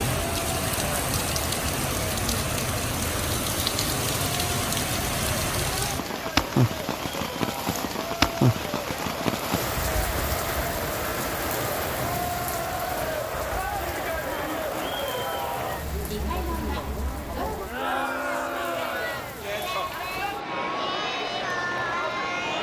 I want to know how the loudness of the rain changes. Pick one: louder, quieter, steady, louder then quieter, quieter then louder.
quieter.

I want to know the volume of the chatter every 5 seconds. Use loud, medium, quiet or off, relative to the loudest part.
medium, medium, loud, loud, loud.